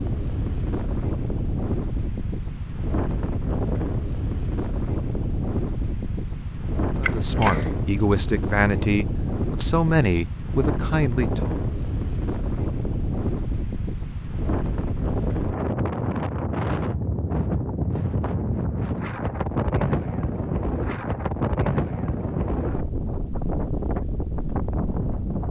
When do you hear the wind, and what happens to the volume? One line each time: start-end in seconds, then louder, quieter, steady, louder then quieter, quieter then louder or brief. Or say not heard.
0.0-25.4 steady.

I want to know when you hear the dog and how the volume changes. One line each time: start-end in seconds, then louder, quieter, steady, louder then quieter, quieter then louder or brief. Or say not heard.
not heard.